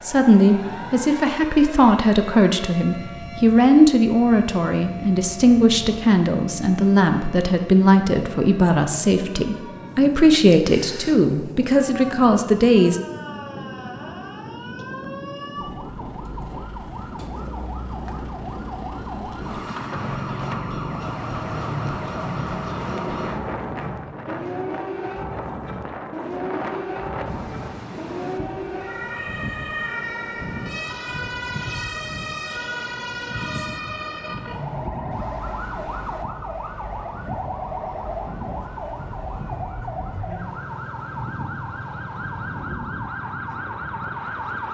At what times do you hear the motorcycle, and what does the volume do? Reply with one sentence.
The motorcycle can be heard from 19.9 to 24.7 s, getting quieter.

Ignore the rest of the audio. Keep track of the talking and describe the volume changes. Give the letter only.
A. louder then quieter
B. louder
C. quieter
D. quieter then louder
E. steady
E.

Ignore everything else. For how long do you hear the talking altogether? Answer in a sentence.
The talking can be heard for 13 seconds in total.